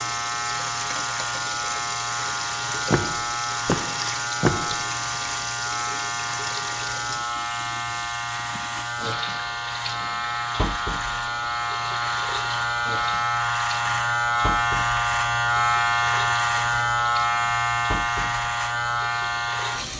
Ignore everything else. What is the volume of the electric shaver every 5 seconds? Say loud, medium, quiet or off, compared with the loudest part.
medium, medium, loud, loud.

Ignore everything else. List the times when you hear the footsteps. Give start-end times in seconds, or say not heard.
2.9-4.8.